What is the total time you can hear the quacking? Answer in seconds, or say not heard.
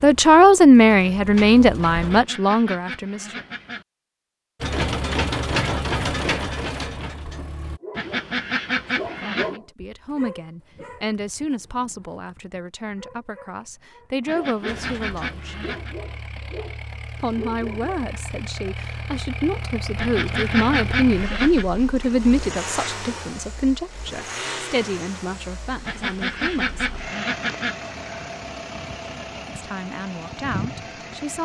9 s.